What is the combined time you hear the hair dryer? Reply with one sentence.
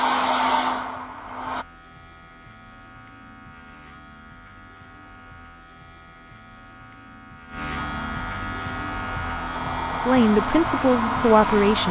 The hair dryer can be heard for 6 seconds in total.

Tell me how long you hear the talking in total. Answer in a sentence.
The talking can be heard for 2 seconds in total.